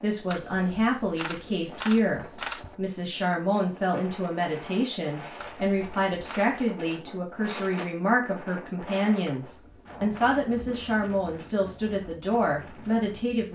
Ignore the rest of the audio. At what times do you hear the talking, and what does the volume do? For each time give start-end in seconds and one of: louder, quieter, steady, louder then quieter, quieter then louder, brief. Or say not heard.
0.0-13.4 steady.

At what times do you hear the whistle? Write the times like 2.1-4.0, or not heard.
not heard.